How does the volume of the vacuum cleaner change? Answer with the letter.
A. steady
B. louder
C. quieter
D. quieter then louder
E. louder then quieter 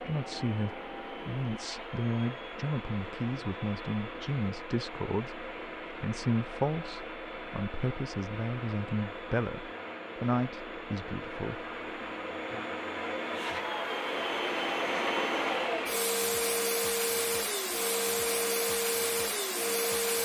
B.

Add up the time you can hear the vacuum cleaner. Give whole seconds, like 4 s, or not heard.
20 s.